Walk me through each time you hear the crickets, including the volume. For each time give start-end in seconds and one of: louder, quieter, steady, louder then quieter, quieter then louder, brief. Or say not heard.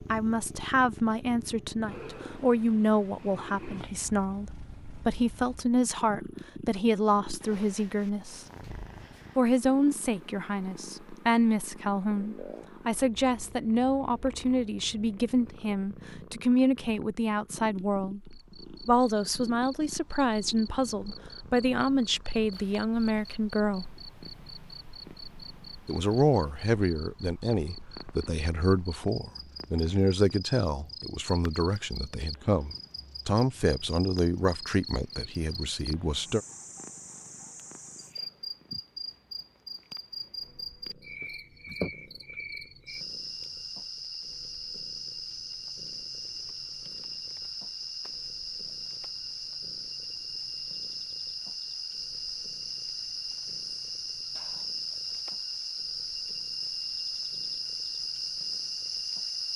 18.2-59.5 louder.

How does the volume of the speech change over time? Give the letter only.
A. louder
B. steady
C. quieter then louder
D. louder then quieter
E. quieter
B.